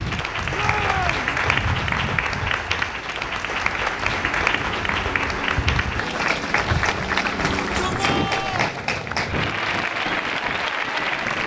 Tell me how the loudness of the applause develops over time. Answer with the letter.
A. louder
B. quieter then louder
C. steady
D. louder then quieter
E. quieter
C.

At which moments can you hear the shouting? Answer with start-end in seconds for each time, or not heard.
0.5-1.2, 7.3-8.8.